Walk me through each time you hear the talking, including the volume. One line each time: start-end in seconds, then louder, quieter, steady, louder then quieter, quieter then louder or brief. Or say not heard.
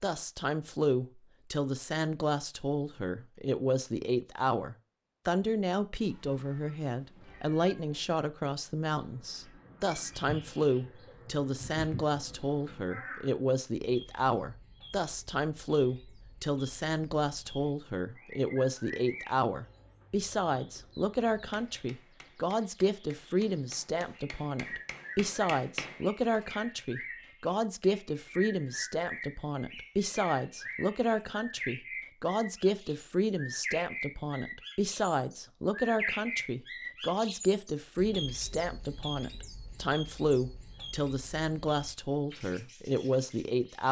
0.0-43.8 steady.